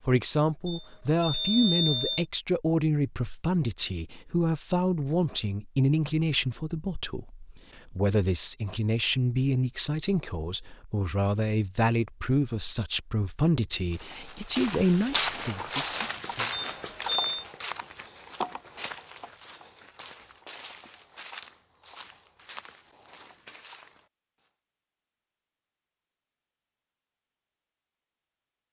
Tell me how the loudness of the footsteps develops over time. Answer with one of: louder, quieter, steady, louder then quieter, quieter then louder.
quieter.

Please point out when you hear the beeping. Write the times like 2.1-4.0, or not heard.
0.7-2.2, 16.8-17.4.